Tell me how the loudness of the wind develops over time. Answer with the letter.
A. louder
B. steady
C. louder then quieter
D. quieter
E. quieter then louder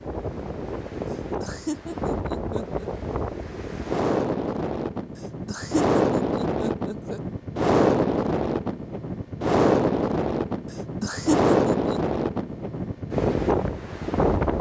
A.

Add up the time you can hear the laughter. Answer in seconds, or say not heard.
5 s.